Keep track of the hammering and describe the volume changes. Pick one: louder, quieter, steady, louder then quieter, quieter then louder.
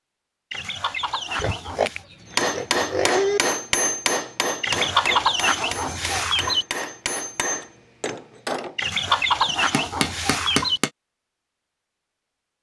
quieter.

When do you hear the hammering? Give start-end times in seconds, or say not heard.
2.3-10.9.